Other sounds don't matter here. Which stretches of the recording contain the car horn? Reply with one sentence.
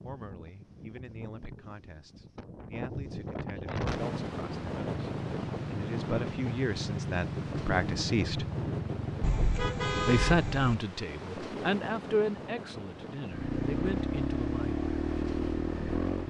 The car horn can be heard from 9.2 to 10.8 s.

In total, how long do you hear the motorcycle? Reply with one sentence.
You can hear the motorcycle for 10 seconds altogether.